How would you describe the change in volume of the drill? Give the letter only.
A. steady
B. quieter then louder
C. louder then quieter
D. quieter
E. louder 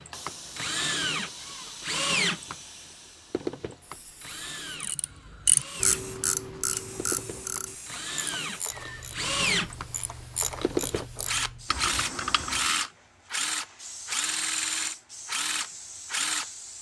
B.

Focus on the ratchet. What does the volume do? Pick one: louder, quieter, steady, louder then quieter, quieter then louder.
quieter then louder.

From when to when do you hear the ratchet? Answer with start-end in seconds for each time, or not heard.
4.8-12.9.